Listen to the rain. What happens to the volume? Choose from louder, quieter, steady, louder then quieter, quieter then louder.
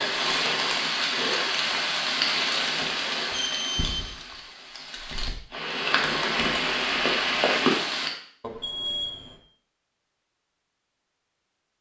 quieter then louder.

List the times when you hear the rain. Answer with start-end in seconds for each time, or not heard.
0.0-8.1.